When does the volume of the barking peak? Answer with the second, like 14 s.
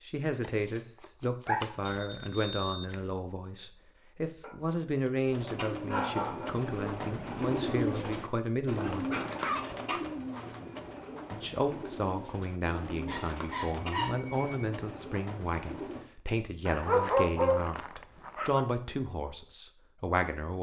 17 s.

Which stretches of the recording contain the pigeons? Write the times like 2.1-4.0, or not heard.
5.2-16.1.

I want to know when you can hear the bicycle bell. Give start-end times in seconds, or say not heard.
1.9-3.0, 12.8-14.7.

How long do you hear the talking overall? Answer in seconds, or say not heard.
18 s.